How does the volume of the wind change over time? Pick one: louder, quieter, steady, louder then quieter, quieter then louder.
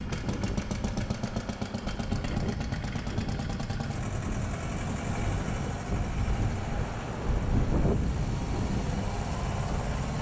louder.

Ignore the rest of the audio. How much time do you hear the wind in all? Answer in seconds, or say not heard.
10 s.